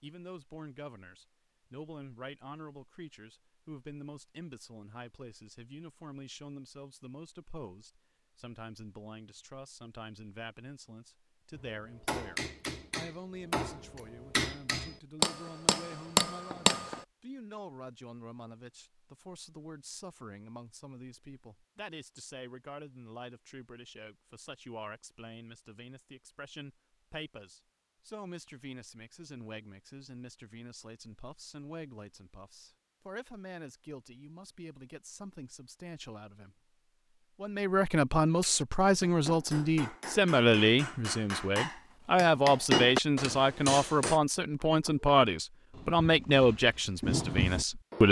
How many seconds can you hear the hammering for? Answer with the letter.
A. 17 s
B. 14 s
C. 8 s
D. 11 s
D.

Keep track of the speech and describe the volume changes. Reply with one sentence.
The volume of the speech goes up.